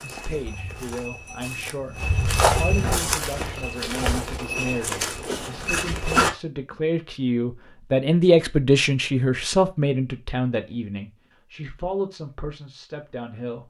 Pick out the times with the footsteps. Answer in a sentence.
The footsteps can be heard from 0.0 to 6.3 s.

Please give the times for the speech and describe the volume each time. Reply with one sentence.
You can hear the speech from 0.0 to 13.6 s, getting louder then quieter.